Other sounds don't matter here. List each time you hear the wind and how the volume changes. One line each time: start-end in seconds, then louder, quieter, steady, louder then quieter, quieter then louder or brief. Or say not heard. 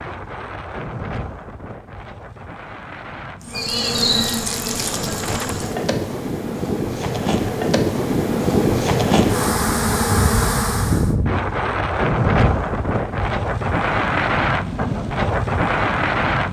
0.0-16.4 louder.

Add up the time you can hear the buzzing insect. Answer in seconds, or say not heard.
8 s.